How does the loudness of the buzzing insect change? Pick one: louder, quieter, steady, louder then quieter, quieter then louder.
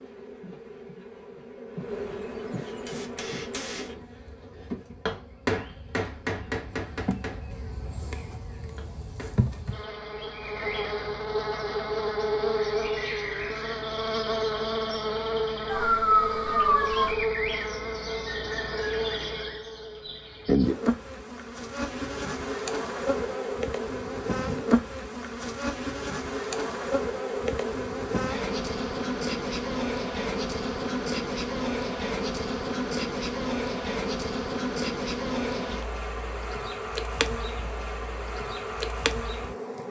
louder.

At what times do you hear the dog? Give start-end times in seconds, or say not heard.
15.7-17.1.